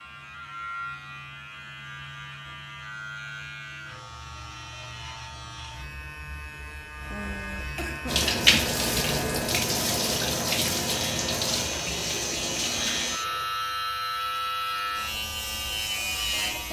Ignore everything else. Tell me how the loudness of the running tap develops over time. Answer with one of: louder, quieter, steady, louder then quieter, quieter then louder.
quieter.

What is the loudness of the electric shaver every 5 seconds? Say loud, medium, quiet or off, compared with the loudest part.
medium, medium, loud, loud.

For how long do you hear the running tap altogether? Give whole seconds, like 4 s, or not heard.
5 s.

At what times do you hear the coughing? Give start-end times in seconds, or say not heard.
7.1-8.3.